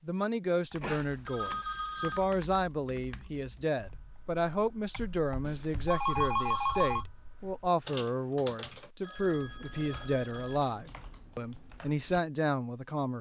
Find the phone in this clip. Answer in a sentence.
You can hear the phone from 0.8 to 2.2 s, from 5.5 to 7.0 s and from 9.0 to 10.8 s.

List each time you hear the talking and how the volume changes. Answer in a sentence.
You can hear the talking from 0.1 to 13.1 s, at a steady volume.